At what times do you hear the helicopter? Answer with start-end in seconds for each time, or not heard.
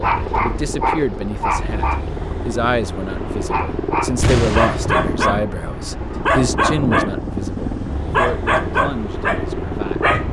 0.0-10.2.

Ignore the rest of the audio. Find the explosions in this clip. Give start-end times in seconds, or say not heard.
4.2-5.2.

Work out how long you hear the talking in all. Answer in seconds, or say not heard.
10 s.